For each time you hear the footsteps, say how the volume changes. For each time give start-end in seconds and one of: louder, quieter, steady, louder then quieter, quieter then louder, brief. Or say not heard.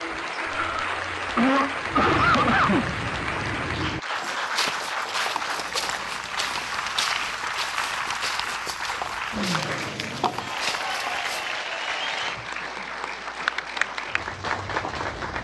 1.9-11.6 steady.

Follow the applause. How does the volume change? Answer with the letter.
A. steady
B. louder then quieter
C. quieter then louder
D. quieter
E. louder
A.